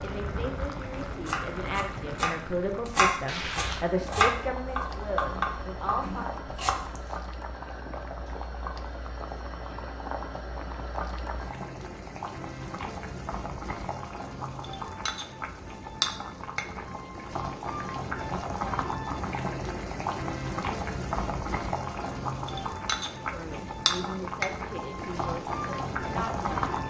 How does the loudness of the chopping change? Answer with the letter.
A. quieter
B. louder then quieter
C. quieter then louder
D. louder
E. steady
B.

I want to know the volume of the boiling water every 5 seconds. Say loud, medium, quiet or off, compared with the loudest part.
medium, medium, medium, loud, loud, loud.